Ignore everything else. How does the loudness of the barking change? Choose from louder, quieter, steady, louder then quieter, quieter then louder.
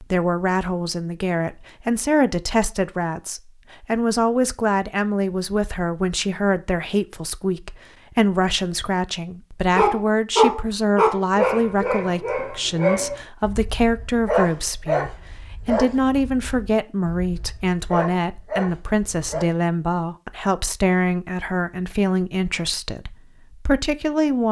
quieter.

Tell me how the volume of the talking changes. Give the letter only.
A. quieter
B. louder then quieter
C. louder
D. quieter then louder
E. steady
E.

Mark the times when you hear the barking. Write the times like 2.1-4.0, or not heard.
9.8-19.4.